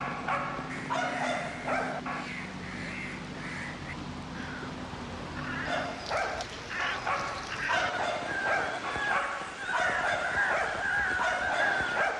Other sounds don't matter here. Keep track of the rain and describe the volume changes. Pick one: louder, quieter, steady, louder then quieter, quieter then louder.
steady.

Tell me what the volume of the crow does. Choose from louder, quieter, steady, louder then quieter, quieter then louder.
louder.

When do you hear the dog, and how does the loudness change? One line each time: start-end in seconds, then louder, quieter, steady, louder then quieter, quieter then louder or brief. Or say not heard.
0.0-2.3 brief
5.7-12.1 steady.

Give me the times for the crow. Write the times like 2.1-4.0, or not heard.
0.7-12.1.